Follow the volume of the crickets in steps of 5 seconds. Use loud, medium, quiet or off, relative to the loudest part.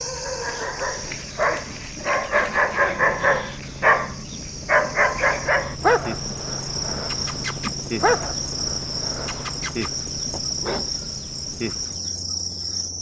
medium, loud, loud.